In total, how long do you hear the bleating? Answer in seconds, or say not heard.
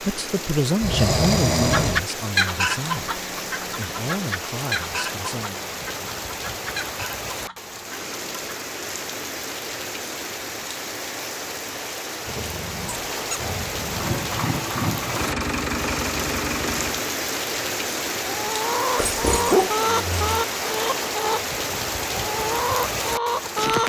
not heard.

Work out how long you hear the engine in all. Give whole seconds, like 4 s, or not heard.
3 s.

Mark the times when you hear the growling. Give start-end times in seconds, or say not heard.
0.8-2.0, 12.2-14.1, 18.9-20.4.